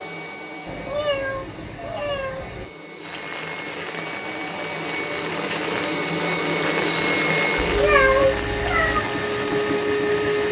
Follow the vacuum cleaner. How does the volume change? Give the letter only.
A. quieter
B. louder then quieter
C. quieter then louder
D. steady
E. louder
E.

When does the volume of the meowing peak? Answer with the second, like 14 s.
8 s.